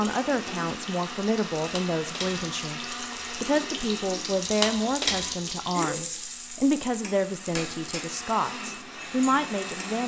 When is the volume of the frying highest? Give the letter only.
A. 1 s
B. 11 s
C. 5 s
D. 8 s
C.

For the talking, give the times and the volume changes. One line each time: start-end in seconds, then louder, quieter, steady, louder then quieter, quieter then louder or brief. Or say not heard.
0.0-10.0 steady.